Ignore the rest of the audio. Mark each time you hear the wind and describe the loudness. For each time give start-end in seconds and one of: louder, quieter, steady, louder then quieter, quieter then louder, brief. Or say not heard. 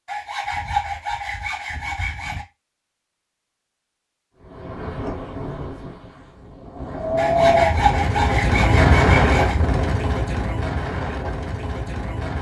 4.4-12.3 louder then quieter.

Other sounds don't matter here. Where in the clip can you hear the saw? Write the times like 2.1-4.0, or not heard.
0.1-2.5, 7.2-9.6.